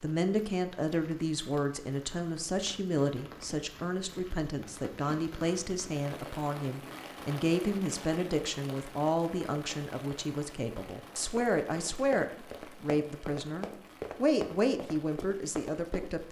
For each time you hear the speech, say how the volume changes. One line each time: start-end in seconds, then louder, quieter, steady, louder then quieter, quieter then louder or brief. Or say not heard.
0.0-16.2 steady.